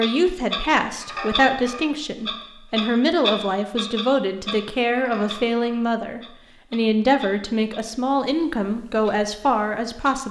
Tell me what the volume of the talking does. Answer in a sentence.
The loudness of the talking stays about the same.